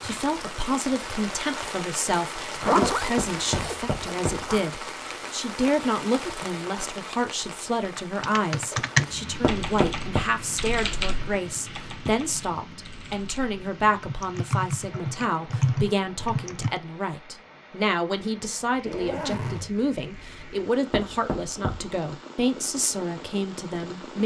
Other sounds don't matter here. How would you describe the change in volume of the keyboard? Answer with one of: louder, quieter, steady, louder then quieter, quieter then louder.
quieter then louder.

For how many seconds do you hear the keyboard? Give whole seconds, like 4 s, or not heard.
9 s.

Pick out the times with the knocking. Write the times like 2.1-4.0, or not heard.
2.8-4.5, 9.4-10.2, 20.9-21.9.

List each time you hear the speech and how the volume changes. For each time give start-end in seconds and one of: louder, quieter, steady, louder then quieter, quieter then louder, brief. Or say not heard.
0.0-24.2 steady.